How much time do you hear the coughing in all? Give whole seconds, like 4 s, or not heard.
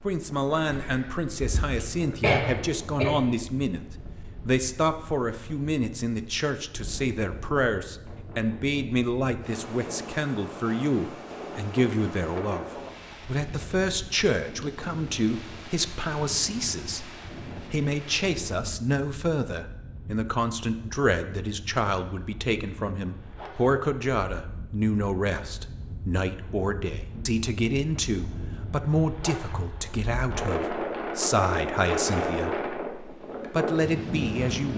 2 s.